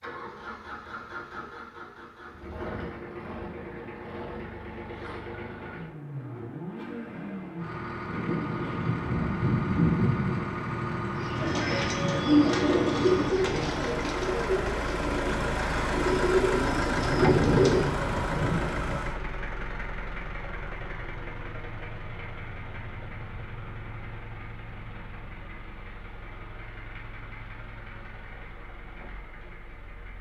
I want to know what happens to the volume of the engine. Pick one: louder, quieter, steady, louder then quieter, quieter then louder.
louder then quieter.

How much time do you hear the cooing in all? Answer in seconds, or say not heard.
7 s.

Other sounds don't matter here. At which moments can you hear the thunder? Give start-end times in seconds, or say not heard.
8.1-11.8, 16.9-18.9.